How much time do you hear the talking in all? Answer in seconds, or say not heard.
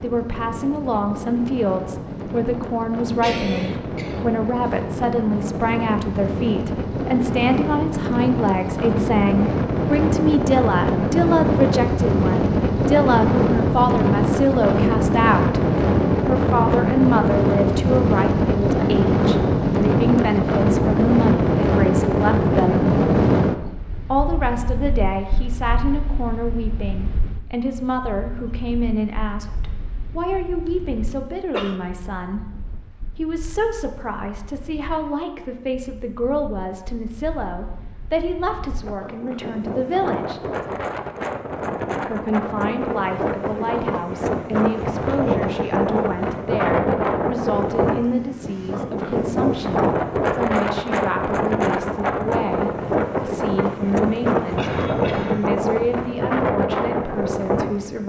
54 s.